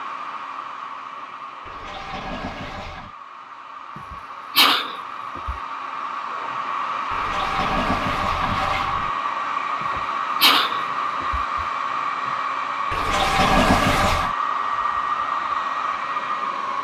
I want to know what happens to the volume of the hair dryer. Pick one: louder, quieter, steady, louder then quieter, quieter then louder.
louder.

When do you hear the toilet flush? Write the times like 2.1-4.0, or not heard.
1.6-3.1, 7.1-9.1, 12.9-14.3.